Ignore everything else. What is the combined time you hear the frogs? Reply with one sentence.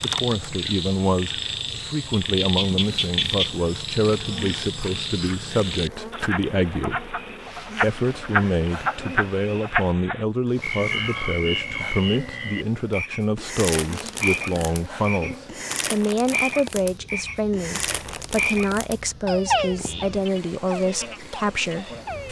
You can hear the frogs for 22 seconds altogether.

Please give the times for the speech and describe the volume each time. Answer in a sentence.
The speech can be heard from 0.0 to 22.2 s, at a steady volume.